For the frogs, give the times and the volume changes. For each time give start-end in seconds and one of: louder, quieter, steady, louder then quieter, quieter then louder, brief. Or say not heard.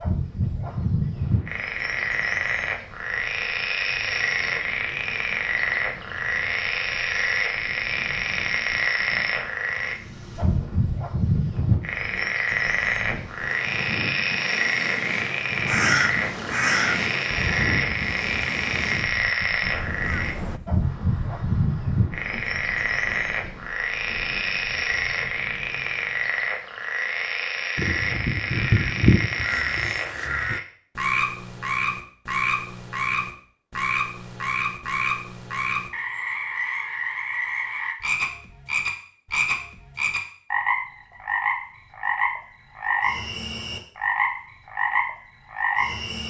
0.0-46.2 steady.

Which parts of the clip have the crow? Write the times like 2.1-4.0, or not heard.
15.7-20.6, 27.8-30.6.